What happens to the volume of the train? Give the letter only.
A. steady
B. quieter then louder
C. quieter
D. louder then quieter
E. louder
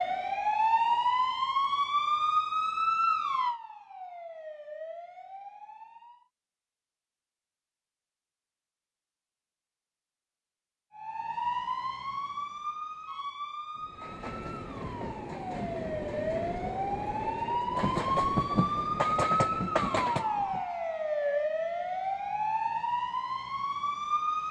E.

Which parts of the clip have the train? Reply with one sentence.
You can hear the train from 13.8 to 20.6 s.